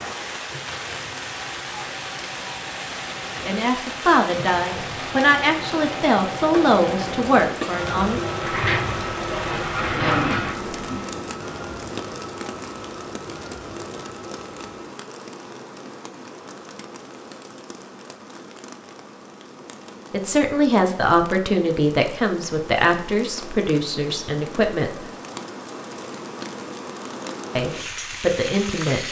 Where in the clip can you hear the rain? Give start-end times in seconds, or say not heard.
0.0-29.0.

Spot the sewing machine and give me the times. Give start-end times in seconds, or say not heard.
0.0-14.9.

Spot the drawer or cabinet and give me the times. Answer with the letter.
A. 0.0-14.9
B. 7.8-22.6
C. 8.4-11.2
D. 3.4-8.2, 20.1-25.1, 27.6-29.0
C.